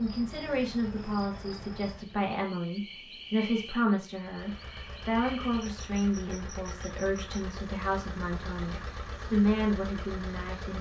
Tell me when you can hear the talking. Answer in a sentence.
The talking can be heard from 0.0 to 10.7 s.